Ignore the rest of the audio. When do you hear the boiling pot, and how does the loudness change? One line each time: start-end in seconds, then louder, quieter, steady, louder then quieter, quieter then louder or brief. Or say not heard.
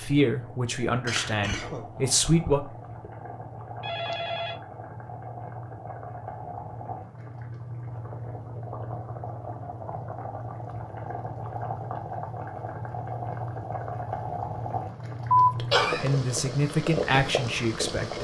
0.0-18.1 louder.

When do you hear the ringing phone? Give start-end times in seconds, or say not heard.
3.8-4.6.